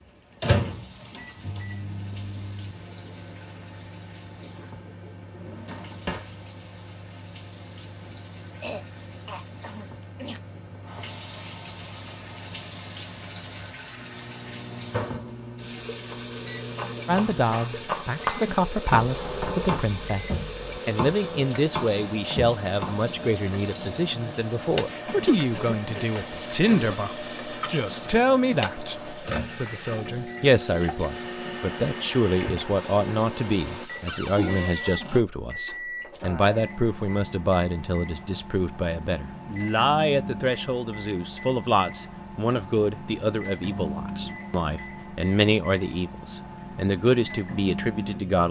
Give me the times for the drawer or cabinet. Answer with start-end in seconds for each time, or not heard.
5.3-6.3, 19.1-20.8, 34.0-35.2.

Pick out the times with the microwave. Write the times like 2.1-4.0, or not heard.
0.0-48.4.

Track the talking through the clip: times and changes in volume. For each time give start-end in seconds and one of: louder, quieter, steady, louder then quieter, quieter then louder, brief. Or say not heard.
17.1-48.4 steady.